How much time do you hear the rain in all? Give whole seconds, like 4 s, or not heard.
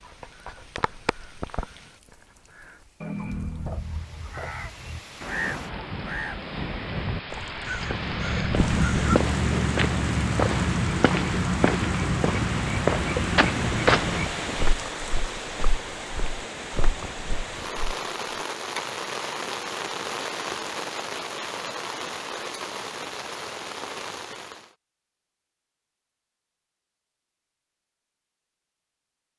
25 s.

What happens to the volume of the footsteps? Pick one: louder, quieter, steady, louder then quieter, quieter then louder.
quieter.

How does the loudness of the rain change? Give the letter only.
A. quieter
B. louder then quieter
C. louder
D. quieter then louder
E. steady
C.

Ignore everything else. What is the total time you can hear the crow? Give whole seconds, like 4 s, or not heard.
9 s.